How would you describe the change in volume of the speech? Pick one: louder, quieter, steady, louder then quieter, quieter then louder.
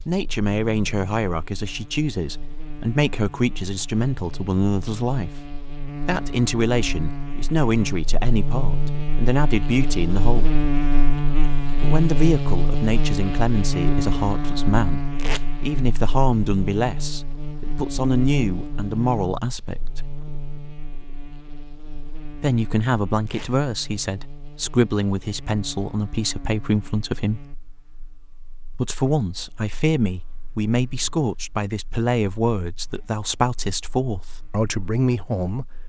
steady.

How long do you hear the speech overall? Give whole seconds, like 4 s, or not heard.
30 s.